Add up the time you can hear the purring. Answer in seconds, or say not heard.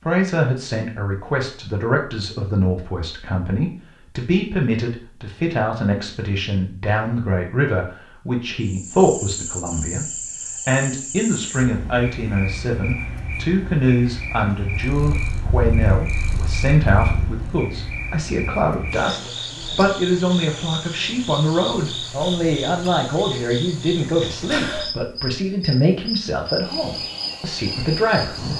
3 s.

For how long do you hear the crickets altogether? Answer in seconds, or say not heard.
20 s.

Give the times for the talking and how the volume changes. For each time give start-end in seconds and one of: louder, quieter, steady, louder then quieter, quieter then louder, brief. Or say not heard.
0.1-10.1 steady
10.7-28.5 steady.